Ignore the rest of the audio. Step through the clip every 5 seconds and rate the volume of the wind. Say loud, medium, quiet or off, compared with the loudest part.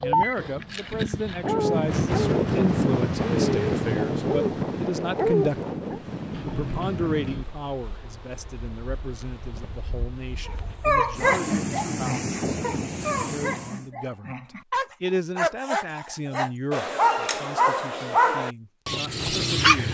loud, medium, medium, off.